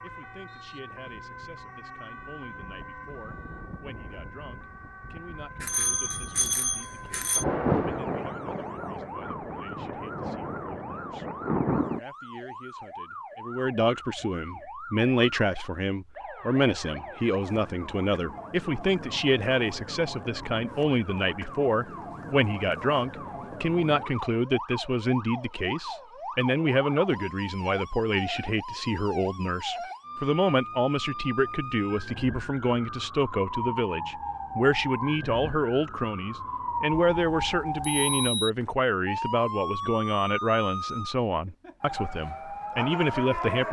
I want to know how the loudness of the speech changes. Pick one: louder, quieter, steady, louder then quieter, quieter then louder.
louder.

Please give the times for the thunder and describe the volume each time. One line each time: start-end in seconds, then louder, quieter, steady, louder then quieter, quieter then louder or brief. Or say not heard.
7.3-12.0 quieter then louder.